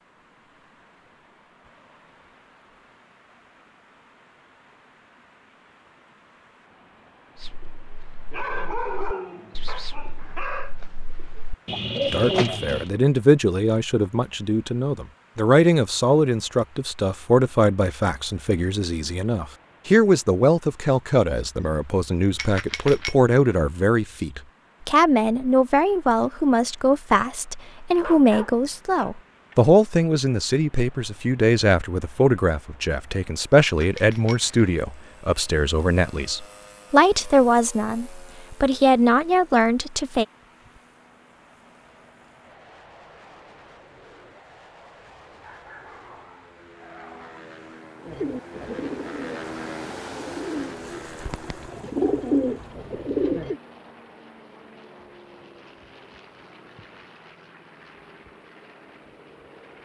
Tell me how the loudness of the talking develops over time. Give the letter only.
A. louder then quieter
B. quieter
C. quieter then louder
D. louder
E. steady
E.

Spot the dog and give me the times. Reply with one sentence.
The dog can be heard from 8.3 to 10.8 s, from 28.0 to 29.6 s and from 45.3 to 47.5 s.